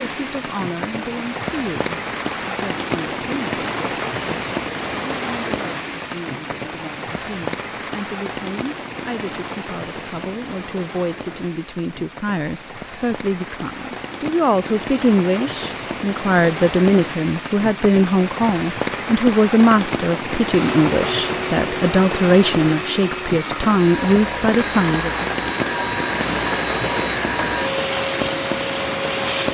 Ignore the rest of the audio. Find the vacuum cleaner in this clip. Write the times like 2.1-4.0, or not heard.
20.5-29.4.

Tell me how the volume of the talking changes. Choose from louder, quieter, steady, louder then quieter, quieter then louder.
louder.